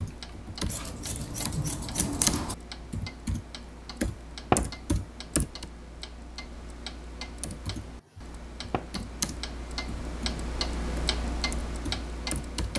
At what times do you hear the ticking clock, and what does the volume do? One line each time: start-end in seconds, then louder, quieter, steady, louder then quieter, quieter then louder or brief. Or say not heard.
0.0-12.7 louder.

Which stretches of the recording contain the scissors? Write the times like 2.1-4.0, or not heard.
0.7-2.5.